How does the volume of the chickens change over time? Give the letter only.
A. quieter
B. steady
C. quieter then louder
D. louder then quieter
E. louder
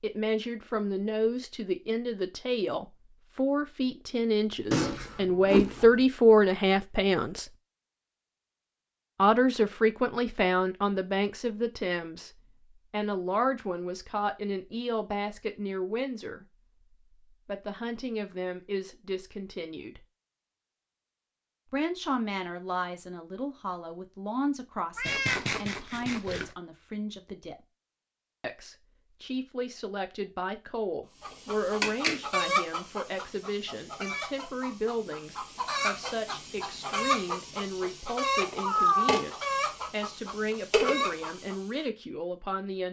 C.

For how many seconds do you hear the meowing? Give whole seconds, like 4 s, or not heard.
3 s.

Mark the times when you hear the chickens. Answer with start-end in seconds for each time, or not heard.
31.2-41.6.